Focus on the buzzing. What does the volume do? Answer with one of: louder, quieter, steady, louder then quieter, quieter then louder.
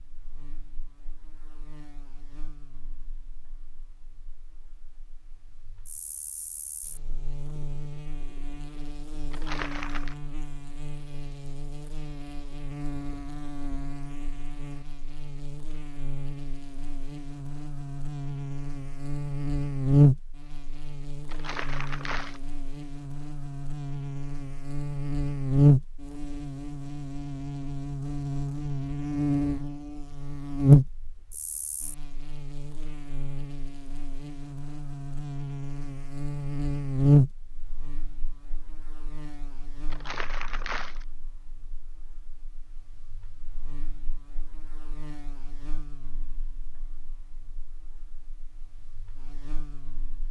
louder then quieter.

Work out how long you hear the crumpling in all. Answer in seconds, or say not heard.
3 s.